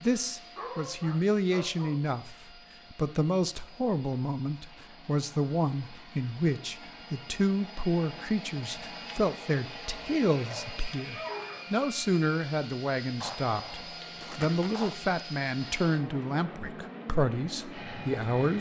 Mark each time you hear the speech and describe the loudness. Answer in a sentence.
The speech can be heard from 0.0 to 18.5 s, at a steady volume.